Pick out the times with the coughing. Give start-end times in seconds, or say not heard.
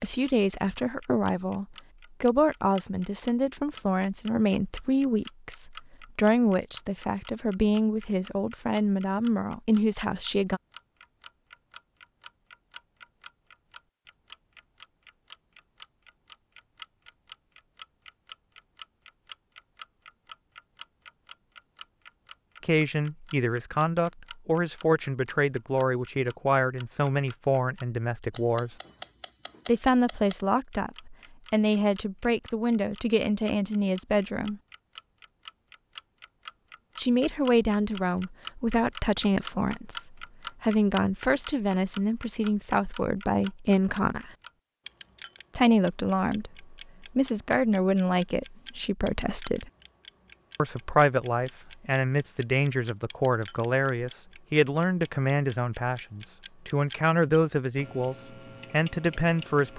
not heard.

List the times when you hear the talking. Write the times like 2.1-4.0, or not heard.
0.0-10.6, 22.6-28.8, 29.6-34.6, 37.0-44.3, 45.5-49.7, 50.5-59.7.